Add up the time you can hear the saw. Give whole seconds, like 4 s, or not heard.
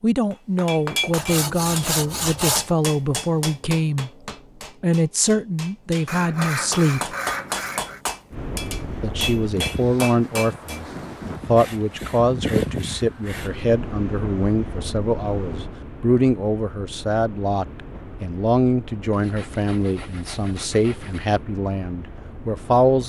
8 s.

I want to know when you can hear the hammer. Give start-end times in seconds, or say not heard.
0.3-10.8.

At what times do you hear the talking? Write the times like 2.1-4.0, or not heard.
0.0-4.1, 4.8-7.2, 9.0-23.0.